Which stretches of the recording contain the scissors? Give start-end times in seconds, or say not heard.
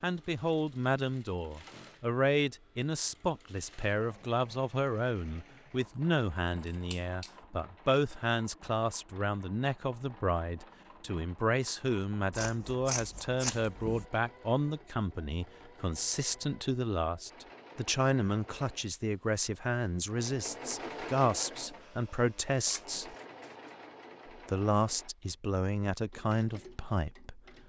6.7-7.3, 12.3-14.1, 22.6-23.2.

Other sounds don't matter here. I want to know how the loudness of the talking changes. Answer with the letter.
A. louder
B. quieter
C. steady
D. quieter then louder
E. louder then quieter
C.